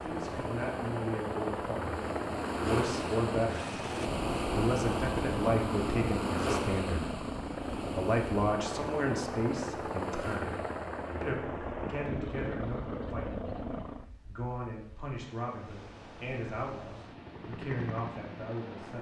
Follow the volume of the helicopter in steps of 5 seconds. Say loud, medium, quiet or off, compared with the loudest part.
loud, loud, loud, medium.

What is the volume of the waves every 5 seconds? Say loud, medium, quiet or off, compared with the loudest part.
loud, loud, quiet, quiet.